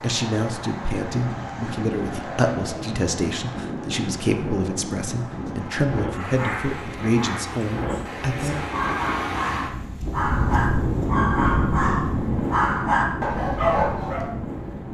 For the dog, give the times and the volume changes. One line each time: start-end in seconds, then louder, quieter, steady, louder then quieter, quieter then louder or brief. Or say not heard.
6.1-14.2 louder.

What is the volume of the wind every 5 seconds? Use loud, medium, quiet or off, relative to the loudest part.
medium, medium, loud.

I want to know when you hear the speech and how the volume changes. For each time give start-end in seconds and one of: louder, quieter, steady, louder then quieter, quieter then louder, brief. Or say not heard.
0.0-8.6 steady.